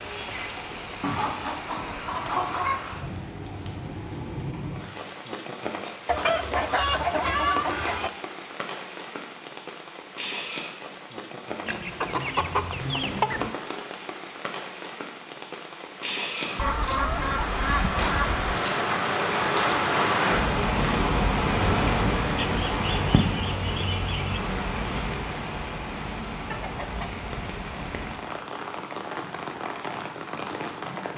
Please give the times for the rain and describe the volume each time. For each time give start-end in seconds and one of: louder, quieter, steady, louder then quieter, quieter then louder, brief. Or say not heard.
0.0-31.1 louder then quieter.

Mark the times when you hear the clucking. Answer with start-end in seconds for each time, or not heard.
1.0-2.8, 6.0-8.1, 11.7-13.6, 16.6-18.4, 22.4-24.4, 26.5-28.2.